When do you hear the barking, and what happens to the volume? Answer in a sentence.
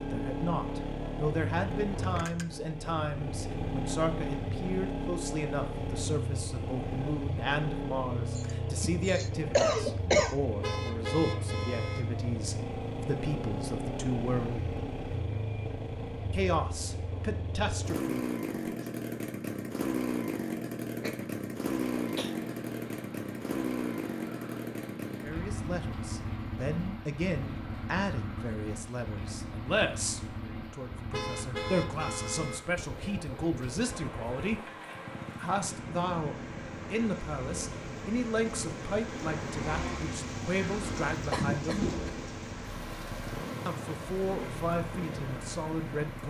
The barking can't be heard in this clip.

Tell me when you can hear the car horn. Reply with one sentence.
You can hear the car horn from 10.6 to 12.1 s and from 31.1 to 32.6 s.